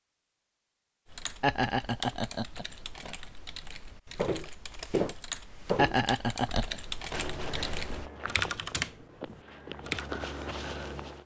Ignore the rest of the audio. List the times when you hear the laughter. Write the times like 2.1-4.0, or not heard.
1.4-3.1, 5.8-6.8.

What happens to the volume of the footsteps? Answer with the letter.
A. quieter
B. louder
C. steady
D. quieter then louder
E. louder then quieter
D.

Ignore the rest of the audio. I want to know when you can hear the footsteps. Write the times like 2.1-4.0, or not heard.
4.2-11.2.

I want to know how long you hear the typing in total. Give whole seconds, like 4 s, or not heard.
9 s.